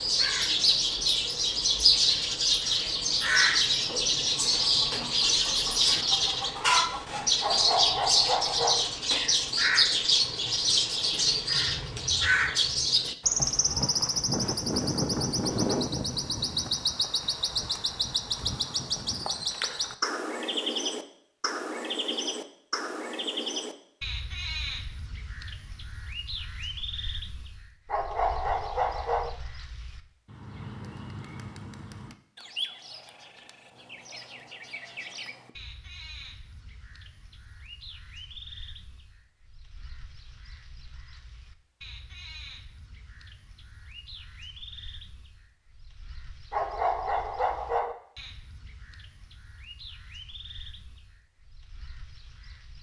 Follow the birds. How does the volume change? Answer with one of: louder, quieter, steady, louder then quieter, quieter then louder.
quieter.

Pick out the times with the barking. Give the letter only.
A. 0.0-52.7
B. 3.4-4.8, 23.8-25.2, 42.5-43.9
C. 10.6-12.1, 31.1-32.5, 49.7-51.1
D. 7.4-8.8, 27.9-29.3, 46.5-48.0
D.